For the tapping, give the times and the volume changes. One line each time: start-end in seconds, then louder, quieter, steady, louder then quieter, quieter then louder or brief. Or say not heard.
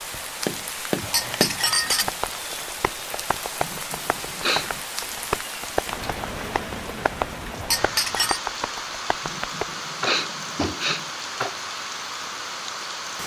0.5-11.6 steady.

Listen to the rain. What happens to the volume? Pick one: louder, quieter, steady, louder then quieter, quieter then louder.
steady.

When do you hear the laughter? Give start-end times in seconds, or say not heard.
not heard.